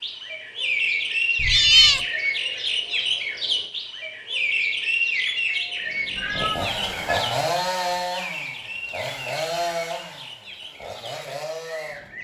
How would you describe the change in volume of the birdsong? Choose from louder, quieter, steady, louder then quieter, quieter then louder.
quieter.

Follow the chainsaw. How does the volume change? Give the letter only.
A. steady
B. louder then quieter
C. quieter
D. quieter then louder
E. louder
C.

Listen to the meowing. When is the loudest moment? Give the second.
2 s.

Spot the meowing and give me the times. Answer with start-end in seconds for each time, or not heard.
1.4-2.0, 6.2-7.4.